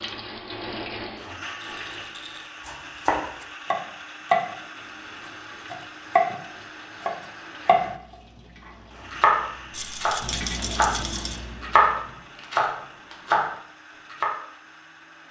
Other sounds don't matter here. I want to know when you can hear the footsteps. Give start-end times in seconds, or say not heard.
not heard.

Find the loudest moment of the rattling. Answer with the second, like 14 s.
10 s.